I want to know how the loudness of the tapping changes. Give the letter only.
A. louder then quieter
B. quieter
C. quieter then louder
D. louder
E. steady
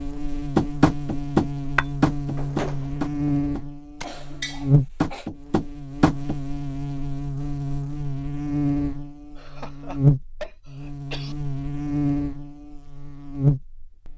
C.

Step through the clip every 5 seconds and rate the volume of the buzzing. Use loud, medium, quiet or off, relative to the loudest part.
loud, medium, loud.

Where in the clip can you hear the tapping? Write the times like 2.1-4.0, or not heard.
0.6-6.3.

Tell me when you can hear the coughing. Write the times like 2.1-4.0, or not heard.
4.0-5.3, 9.3-11.3.